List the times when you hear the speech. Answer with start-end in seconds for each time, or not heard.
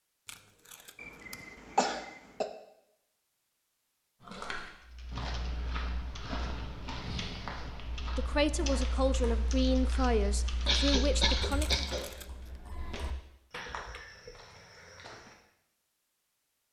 8.2-11.8.